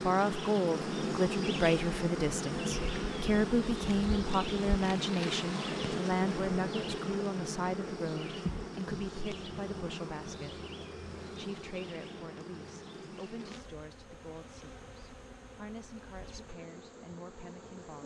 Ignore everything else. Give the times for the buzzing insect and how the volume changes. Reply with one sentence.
You can hear the buzzing insect from 0.0 to 18.0 s, getting quieter.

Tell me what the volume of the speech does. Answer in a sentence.
The loudness of the speech goes down.